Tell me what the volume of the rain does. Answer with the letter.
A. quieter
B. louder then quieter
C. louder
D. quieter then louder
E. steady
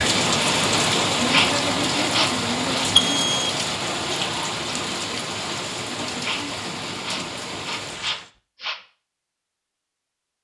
A.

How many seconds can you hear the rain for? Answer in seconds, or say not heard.
8 s.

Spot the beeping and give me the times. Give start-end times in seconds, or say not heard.
2.8-3.5.